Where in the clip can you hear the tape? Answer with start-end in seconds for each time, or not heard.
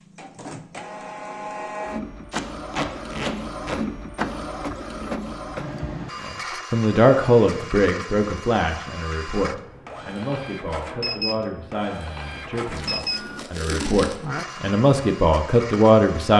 2.3-3.8, 12.8-14.4.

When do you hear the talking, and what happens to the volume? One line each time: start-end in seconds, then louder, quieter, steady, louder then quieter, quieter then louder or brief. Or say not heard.
6.2-16.3 quieter then louder.